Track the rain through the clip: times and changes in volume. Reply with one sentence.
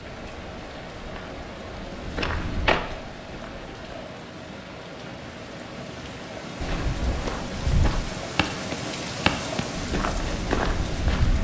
The rain can be heard from 0.0 to 11.3 s, getting louder.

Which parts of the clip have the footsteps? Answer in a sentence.
You can hear the footsteps from 0.0 to 4.0 s and from 6.6 to 11.3 s.